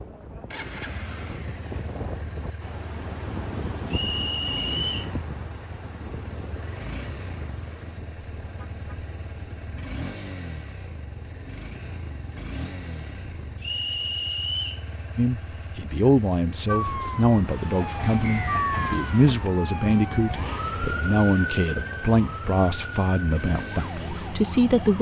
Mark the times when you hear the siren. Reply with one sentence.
You can hear the siren from 16.6 to 24.9 s.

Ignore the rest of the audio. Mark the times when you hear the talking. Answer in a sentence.
You can hear the talking from 15.2 to 24.9 s.